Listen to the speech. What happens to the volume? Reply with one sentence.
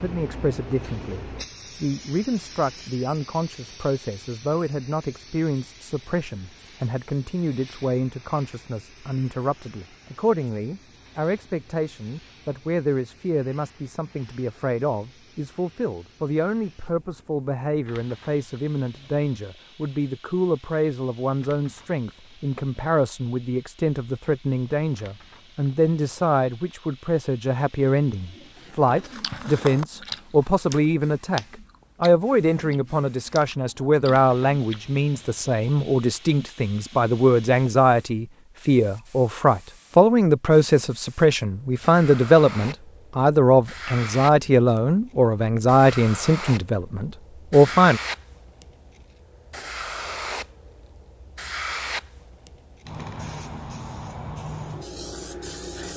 The volume of the speech goes up.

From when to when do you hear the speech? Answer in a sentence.
You can hear the speech from 0.0 to 48.0 s.